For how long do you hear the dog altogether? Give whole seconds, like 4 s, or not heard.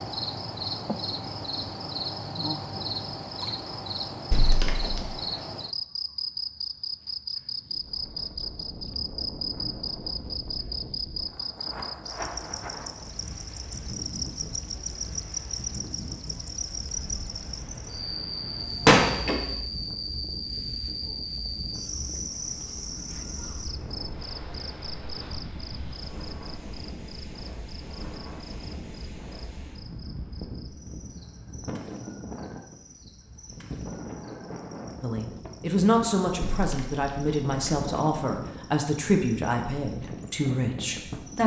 not heard.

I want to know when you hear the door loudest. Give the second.
19 s.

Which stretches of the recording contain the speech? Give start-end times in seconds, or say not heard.
35.0-41.4.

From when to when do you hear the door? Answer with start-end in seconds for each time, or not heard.
4.3-5.1, 18.6-19.5, 36.4-37.9.